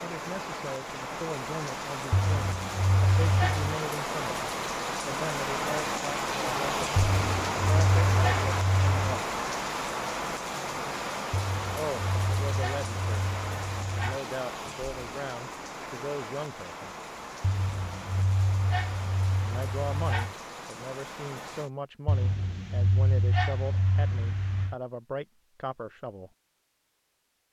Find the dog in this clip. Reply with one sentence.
The dog can be heard from 2.1 to 3.8 s, from 7.0 to 9.2 s, from 11.3 to 14.2 s, from 17.4 to 20.4 s and from 22.1 to 24.8 s.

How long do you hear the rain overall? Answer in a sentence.
The rain can be heard for 22 seconds in total.